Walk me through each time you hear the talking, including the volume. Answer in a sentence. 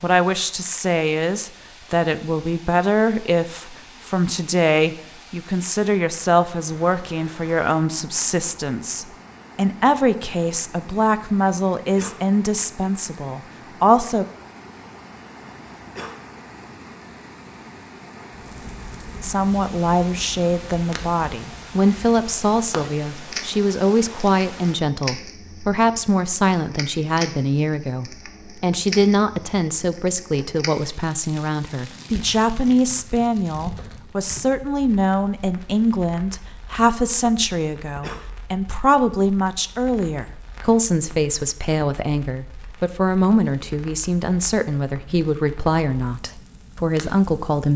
The talking can be heard from 0.0 to 14.2 s, at a steady volume; and from 19.2 to 47.7 s, at a steady volume.